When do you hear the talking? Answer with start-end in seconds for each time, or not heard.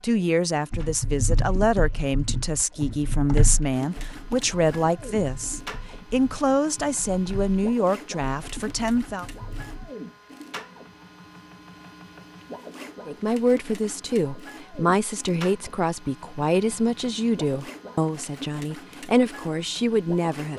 0.0-9.2, 13.1-20.5.